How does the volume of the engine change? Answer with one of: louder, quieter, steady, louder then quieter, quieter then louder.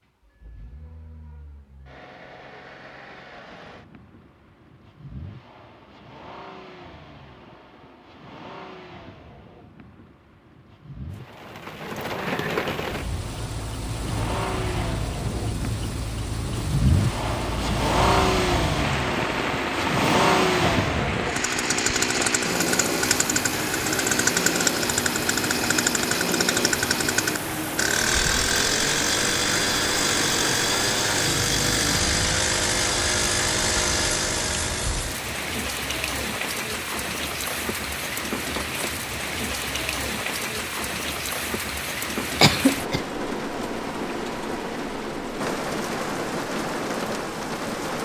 louder.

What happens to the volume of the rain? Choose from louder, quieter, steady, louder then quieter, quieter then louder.
steady.